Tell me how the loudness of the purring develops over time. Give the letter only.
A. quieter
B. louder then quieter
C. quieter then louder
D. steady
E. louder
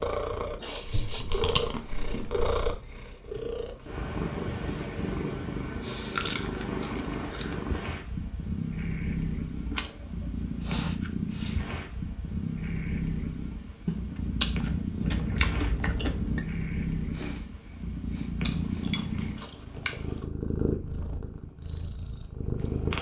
D.